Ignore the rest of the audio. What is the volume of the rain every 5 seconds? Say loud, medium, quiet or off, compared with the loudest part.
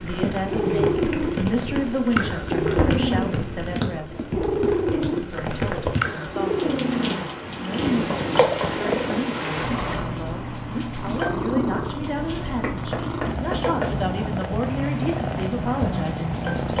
loud, loud, medium, medium.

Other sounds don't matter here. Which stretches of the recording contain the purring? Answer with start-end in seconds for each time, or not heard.
0.0-16.7.